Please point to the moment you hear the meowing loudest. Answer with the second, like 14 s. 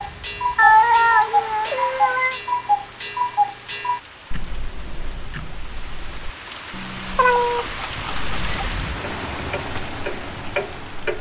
1 s.